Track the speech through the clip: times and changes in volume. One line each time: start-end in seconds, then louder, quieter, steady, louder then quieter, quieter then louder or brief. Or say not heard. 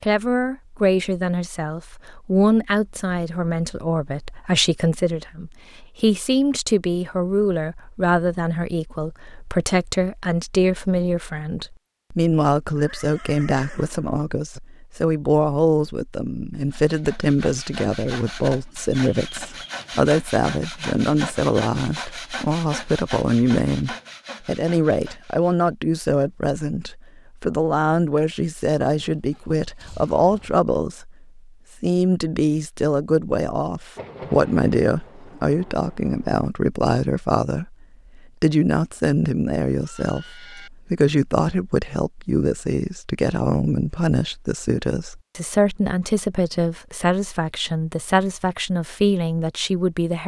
0.0-50.2 steady.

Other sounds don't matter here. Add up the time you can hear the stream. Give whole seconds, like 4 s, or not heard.
not heard.